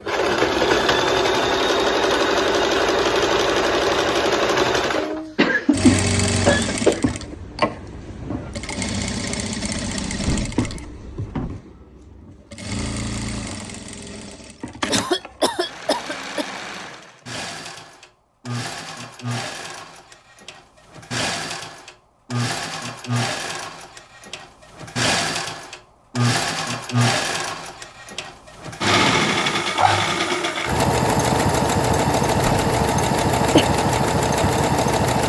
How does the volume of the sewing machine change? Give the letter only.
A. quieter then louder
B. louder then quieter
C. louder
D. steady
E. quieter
A.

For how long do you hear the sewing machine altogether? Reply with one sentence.
The sewing machine can be heard for 35 seconds in total.